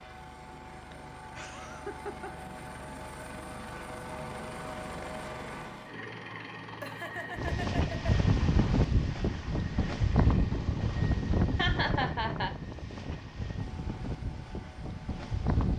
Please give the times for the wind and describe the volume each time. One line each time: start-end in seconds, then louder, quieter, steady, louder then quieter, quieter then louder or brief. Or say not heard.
7.3-15.7 quieter.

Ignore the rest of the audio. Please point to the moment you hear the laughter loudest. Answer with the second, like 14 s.
12 s.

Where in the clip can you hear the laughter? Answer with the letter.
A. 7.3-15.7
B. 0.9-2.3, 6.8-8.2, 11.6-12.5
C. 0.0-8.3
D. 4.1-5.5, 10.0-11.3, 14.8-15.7
B.